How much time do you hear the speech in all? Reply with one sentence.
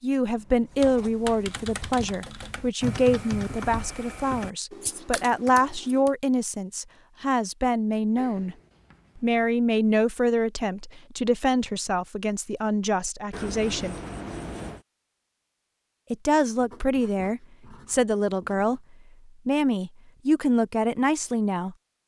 The speech can be heard for 18 seconds in total.